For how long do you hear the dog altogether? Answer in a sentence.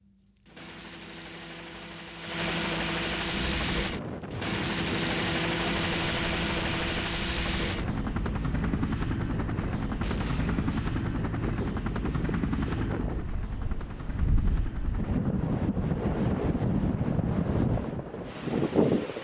You can't hear the dog here.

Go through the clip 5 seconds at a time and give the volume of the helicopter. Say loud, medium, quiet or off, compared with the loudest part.
loud, loud, loud, medium.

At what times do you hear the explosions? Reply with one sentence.
You can hear the explosions from 10.0 to 10.9 s.